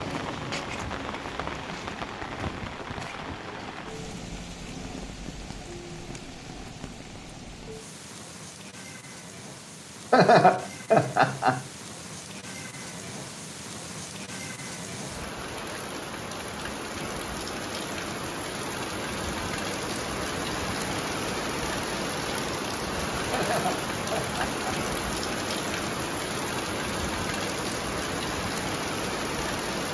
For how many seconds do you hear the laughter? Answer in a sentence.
You can hear the laughter for 3 seconds altogether.